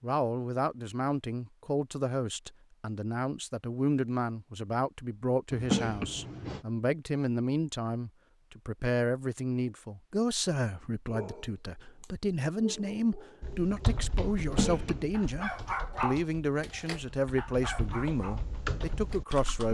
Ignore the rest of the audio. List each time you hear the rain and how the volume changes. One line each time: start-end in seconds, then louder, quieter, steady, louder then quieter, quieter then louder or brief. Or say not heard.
not heard.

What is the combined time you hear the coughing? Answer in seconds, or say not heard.
2 s.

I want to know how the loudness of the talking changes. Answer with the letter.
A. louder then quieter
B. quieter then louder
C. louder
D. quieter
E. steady
E.